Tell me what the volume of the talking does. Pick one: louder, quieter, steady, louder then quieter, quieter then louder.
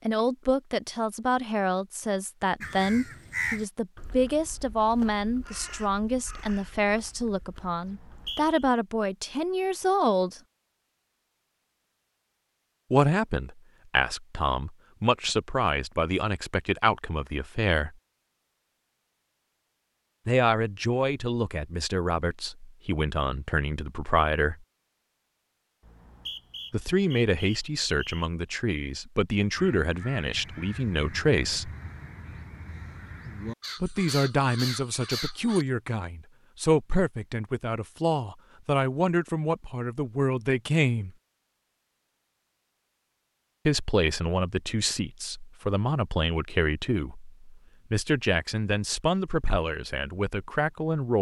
steady.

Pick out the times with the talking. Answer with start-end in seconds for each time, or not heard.
0.1-10.4, 12.9-17.9, 20.2-24.6, 26.7-31.7, 33.8-41.1, 43.6-51.1.